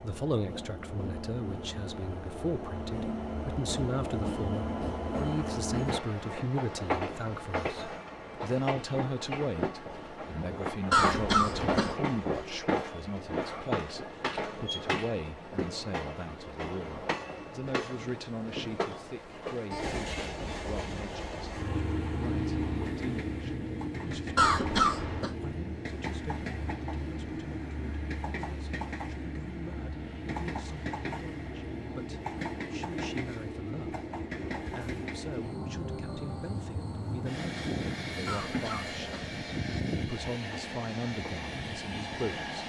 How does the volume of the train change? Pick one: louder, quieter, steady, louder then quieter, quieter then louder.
steady.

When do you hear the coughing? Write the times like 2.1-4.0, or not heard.
10.9-11.9, 24.4-25.3, 38.2-39.3.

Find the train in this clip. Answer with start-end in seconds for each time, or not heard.
0.0-42.6.